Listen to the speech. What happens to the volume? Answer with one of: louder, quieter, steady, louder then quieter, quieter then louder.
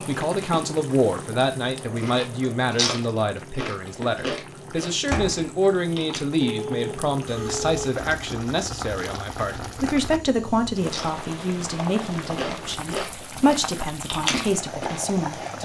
steady.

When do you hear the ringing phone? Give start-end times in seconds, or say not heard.
6.4-7.8.